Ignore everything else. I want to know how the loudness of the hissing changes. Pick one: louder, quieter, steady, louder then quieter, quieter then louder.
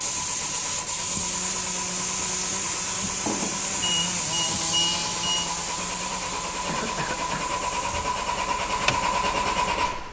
quieter.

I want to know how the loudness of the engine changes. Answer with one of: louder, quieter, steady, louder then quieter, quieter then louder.
louder.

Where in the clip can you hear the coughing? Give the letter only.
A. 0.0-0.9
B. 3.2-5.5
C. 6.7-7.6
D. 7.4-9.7
C.